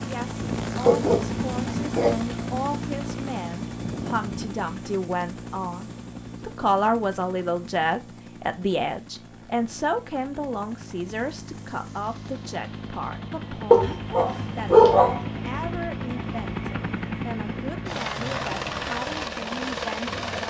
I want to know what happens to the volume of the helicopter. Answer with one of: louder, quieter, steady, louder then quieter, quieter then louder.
quieter then louder.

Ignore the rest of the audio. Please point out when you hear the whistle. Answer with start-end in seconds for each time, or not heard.
not heard.